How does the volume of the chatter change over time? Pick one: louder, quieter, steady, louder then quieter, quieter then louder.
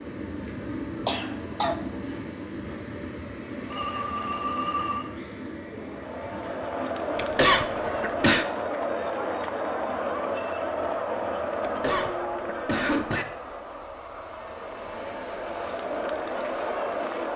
quieter then louder.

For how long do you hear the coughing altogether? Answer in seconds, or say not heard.
4 s.